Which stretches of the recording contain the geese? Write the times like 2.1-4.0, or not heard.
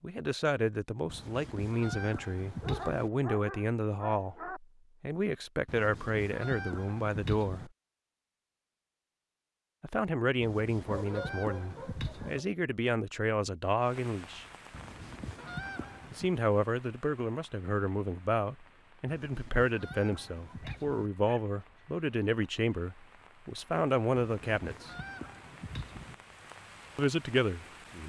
1.1-3.1, 5.7-7.7, 10.4-12.4, 14.7-16.3, 19.1-21.1, 24.1-26.1.